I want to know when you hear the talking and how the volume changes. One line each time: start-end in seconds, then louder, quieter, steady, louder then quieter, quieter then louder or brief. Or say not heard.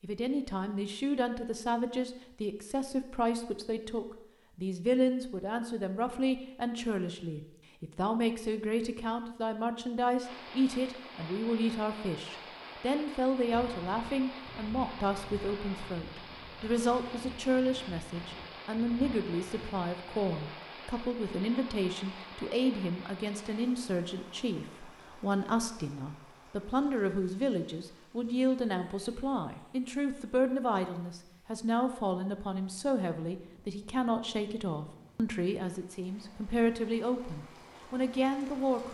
0.0-38.9 steady.